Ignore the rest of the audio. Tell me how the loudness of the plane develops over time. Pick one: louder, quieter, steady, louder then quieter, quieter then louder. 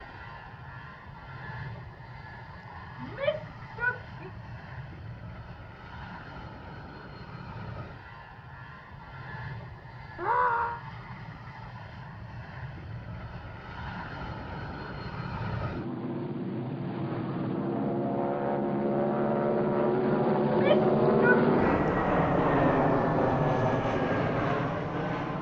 louder.